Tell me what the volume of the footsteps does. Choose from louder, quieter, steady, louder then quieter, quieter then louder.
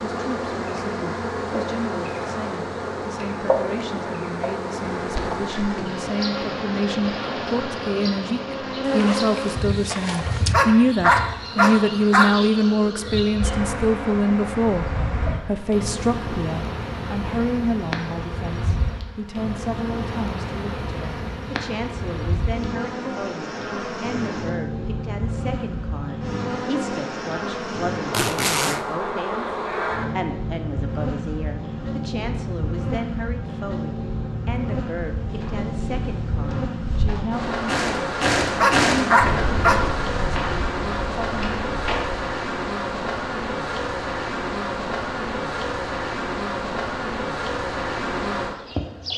louder then quieter.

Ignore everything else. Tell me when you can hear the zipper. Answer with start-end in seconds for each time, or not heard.
8.8-10.6, 28.1-28.9.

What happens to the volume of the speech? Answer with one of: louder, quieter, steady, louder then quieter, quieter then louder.
louder then quieter.